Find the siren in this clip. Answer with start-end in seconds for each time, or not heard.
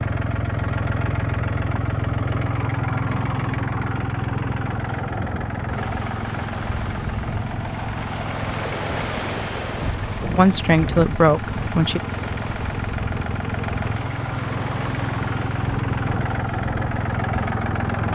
not heard.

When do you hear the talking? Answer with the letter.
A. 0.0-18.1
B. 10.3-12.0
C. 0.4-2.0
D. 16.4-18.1
B.